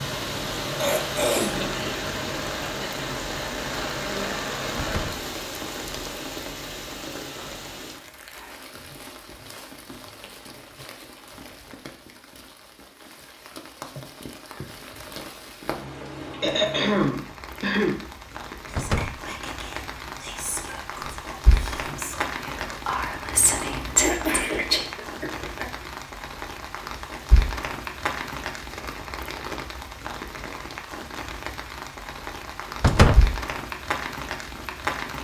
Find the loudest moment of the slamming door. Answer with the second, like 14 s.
33 s.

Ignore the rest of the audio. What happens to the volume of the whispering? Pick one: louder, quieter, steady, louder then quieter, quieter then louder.
louder.